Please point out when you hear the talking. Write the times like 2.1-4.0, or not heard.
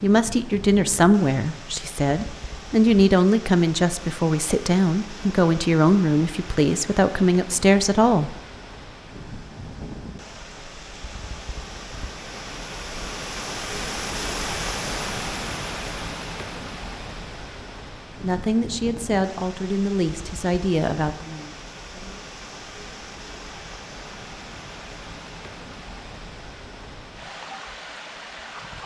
0.0-8.3, 18.2-22.2.